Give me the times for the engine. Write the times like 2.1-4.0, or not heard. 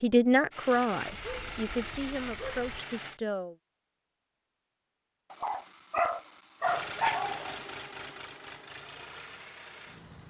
0.0-3.2, 6.6-10.2.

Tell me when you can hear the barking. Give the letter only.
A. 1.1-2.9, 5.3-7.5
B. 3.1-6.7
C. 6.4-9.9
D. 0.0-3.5
A.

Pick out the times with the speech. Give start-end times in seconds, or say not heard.
0.0-3.5.